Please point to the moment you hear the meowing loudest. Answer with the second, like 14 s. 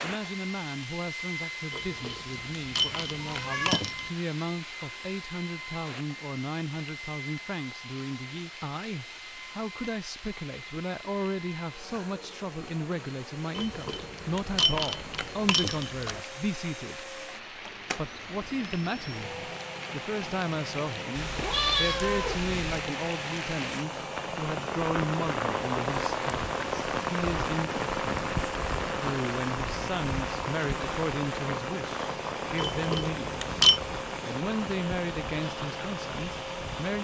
22 s.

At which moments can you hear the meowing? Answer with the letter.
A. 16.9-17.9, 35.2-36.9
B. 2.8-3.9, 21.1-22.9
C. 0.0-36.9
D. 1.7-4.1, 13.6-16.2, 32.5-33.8
B.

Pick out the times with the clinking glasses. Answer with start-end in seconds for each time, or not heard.
1.7-4.1, 13.6-16.2, 32.5-33.8.